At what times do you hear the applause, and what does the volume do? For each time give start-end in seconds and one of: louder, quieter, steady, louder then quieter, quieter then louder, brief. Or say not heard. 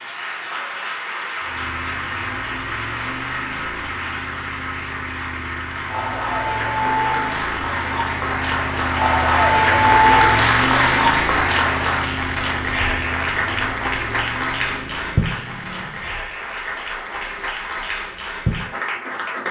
0.0-19.4 louder then quieter.